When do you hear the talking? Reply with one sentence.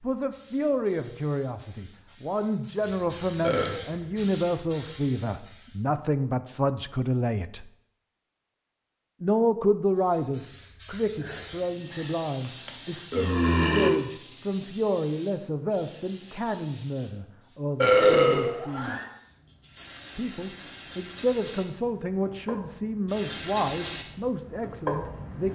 You can hear the talking from 0.0 to 7.7 s, from 9.2 to 18.9 s and from 20.1 to 25.4 s.